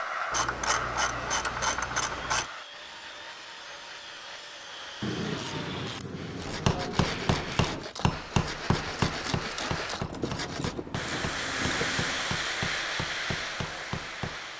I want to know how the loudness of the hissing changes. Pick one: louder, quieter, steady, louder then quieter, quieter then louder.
quieter then louder.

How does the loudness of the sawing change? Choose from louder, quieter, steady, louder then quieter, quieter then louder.
louder.